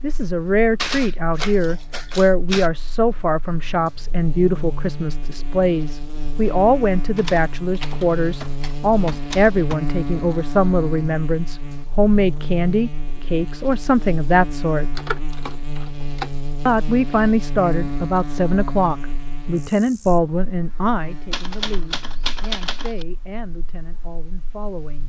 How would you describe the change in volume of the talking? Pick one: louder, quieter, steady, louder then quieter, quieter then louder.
quieter.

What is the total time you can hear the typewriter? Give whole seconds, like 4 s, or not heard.
8 s.